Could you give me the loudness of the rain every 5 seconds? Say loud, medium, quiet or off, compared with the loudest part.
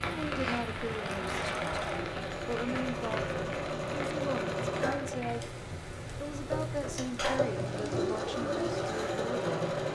loud, medium.